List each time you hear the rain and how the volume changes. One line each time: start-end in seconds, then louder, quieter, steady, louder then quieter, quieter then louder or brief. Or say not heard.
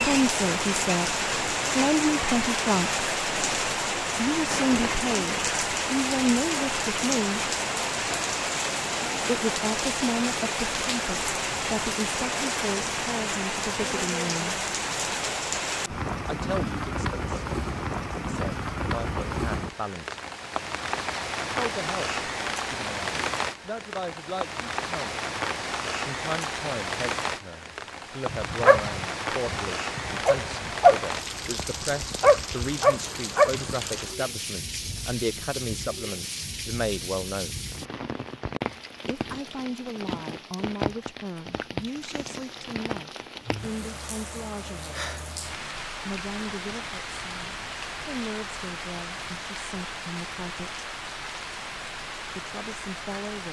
0.0-53.4 quieter.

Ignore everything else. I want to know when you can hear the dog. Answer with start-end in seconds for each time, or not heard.
28.2-31.5, 32.2-33.8.